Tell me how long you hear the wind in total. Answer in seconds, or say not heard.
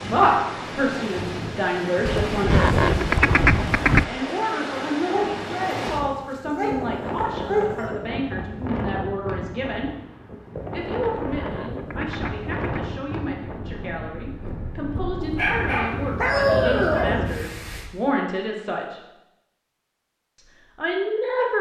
18 s.